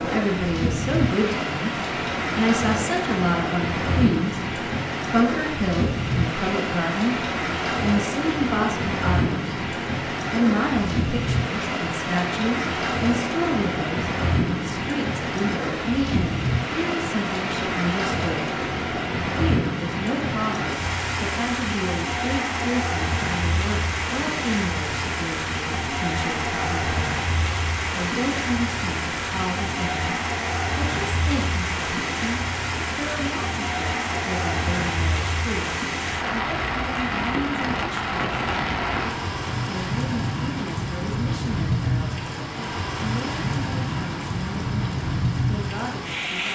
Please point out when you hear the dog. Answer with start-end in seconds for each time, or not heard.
not heard.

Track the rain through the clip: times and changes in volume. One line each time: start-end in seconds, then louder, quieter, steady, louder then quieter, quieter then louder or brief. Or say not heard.
0.0-46.5 steady.